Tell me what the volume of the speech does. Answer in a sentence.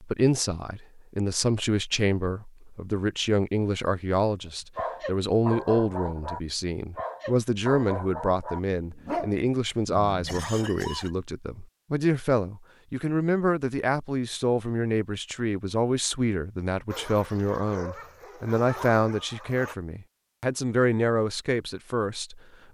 The loudness of the speech stays about the same.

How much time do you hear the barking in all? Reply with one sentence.
The barking can be heard for 9 seconds in total.